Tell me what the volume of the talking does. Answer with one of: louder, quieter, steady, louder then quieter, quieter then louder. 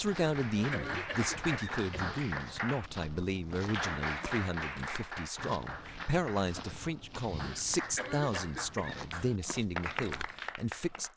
steady.